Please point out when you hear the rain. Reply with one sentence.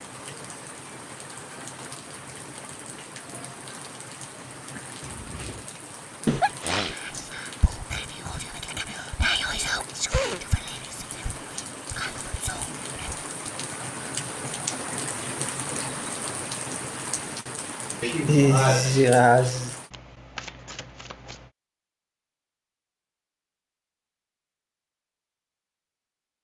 You can hear the rain from 0.0 to 19.9 s.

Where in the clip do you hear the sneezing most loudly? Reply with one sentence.
The loudest moment of the sneezing is at 19 seconds.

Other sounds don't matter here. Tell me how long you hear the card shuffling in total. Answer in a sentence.
The card shuffling can be heard for 2 seconds in total.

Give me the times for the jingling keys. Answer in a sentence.
The jingling keys can't be heard in this clip.